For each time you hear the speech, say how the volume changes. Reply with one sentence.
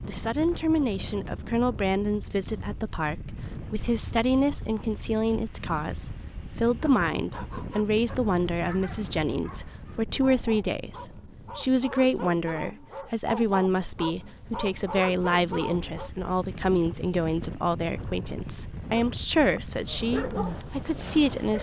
The speech can be heard from 0.1 to 21.5 s, at a steady volume.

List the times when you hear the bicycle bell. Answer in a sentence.
You can't hear the bicycle bell here.